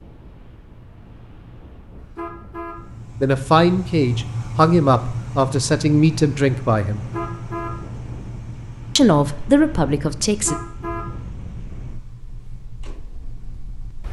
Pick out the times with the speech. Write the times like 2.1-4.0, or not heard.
3.2-7.0, 8.9-10.6.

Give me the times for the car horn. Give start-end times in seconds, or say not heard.
1.9-2.8, 7.0-7.8, 10.2-11.1.